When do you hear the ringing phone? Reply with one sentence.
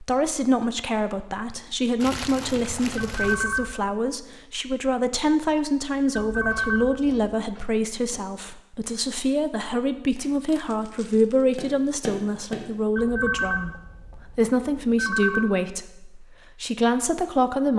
The ringing phone can be heard from 3.0 to 3.8 s, from 6.2 to 7.4 s and from 12.9 to 15.6 s.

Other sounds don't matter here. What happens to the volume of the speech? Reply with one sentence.
The volume of the speech stays about the same.